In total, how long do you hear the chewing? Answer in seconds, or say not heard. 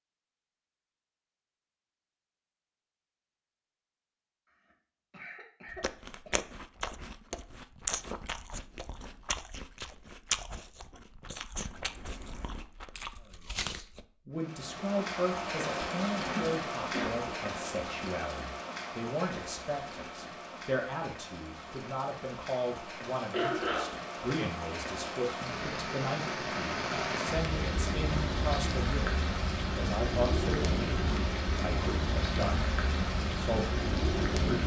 8 s.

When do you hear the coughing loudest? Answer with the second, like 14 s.
24 s.